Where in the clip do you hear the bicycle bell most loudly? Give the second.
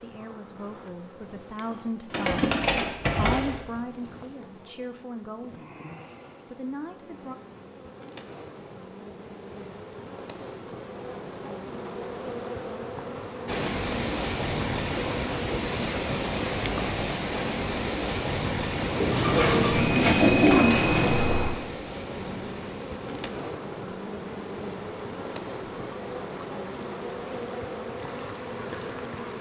20 s.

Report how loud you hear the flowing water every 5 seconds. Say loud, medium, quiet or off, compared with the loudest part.
off, off, loud, loud, medium, quiet.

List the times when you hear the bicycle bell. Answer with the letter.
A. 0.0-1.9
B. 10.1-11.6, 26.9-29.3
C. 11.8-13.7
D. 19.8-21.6
D.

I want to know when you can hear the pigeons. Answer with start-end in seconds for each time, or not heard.
2.1-3.6, 18.9-21.4.